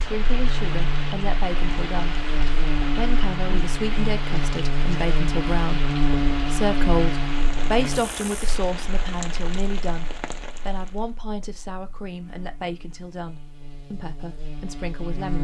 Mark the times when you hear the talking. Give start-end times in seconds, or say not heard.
0.0-15.4.